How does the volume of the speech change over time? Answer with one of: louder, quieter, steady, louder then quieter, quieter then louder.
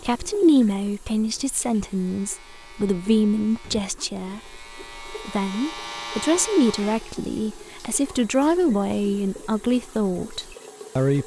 steady.